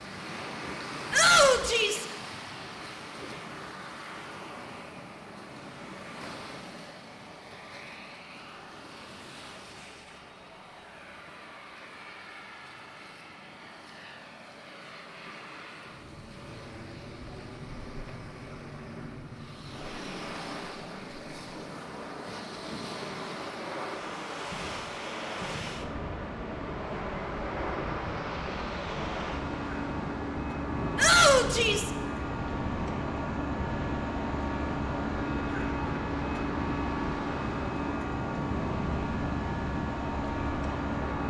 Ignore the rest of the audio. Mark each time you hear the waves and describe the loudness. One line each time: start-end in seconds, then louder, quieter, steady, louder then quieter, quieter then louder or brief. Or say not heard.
0.0-41.2 quieter then louder.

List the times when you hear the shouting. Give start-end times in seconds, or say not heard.
1.1-2.0, 30.9-31.9.